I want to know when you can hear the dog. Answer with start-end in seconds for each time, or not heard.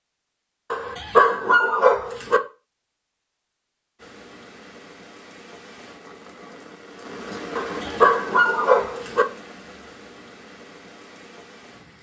0.7-2.4, 7.5-9.2.